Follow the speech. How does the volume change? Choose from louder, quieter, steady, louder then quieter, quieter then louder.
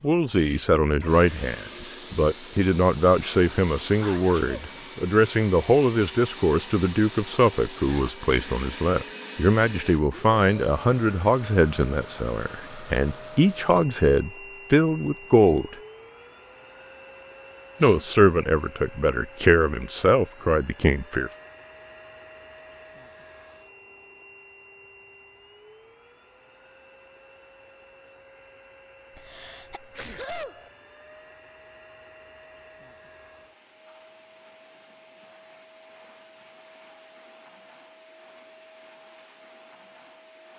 steady.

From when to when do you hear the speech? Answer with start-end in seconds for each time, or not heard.
0.0-15.8, 17.8-21.3.